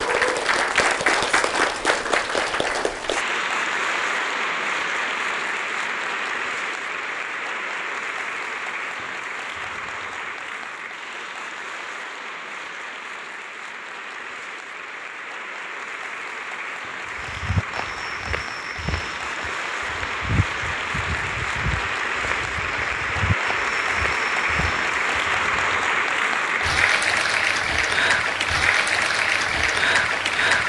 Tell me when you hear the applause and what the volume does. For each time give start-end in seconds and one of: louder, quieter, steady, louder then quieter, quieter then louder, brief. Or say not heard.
0.0-30.6 quieter then louder.